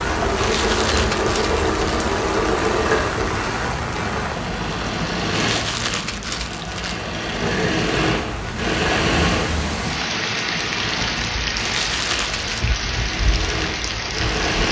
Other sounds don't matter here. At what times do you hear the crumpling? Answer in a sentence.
The crumpling can be heard from 0.3 to 2.0 s, from 5.3 to 7.0 s and from 11.6 to 12.7 s.